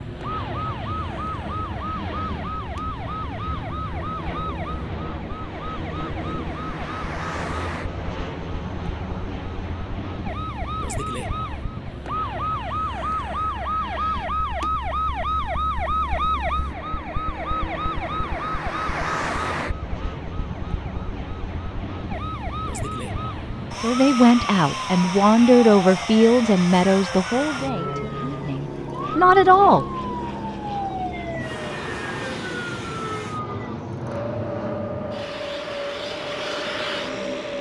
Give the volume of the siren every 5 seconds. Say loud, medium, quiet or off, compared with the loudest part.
medium, medium, loud, loud, medium, medium, medium, medium.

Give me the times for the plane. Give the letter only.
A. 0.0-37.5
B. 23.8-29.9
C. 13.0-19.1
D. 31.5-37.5
A.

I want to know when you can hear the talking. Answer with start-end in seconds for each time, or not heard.
23.8-29.9.